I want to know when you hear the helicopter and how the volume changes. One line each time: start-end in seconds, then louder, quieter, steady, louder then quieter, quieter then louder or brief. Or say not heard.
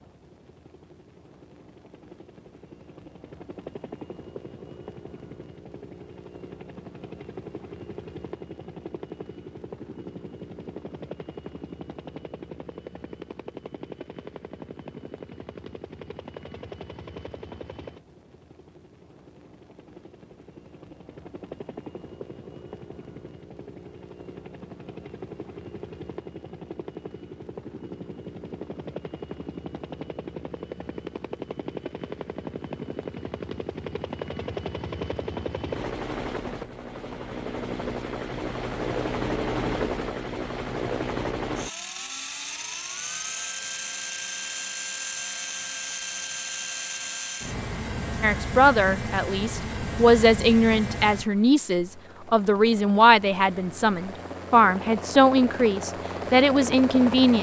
0.0-57.3 louder.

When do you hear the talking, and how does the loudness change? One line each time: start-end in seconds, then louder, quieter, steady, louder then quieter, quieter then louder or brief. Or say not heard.
48.2-57.3 steady.